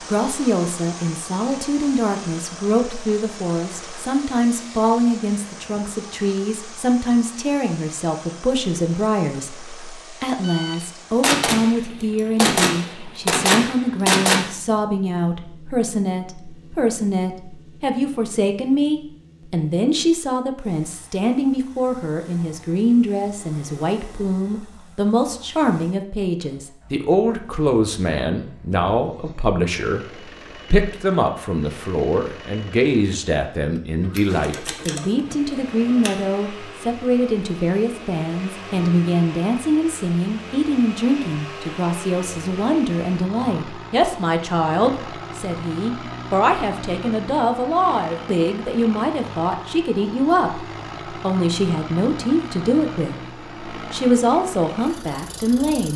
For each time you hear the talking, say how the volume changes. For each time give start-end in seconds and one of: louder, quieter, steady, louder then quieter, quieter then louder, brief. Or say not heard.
0.0-30.1 steady
30.7-55.9 steady.